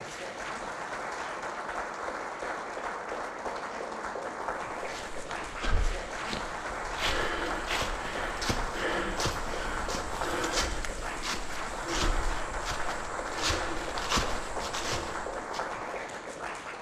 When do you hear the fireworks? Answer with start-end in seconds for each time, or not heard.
not heard.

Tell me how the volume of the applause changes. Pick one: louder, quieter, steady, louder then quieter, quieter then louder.
steady.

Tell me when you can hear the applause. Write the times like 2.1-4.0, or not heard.
0.0-16.7.